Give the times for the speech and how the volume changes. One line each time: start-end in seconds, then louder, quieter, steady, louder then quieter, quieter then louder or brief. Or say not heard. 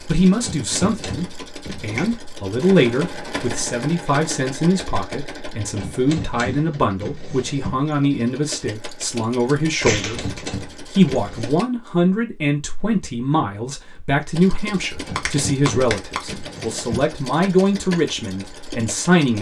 0.0-19.3 steady.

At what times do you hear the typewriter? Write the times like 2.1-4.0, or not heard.
0.4-2.2, 5.8-7.8, 9.9-11.6, 15.1-17.1.